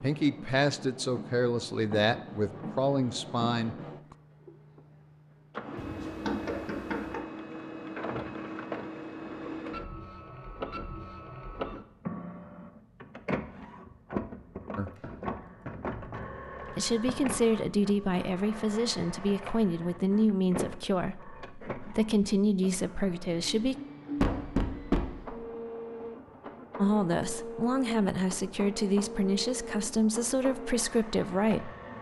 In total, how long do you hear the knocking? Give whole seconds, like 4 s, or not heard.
5 s.